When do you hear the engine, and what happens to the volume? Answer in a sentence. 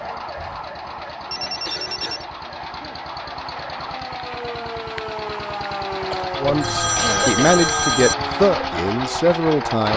You can hear the engine from 0.0 to 9.9 s, getting louder.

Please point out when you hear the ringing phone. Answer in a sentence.
The ringing phone can be heard from 1.2 to 2.2 s and from 6.5 to 8.2 s.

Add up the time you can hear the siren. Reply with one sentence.
The siren can be heard for 10 seconds in total.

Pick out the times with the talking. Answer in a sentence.
The talking can be heard from 6.3 to 9.9 s.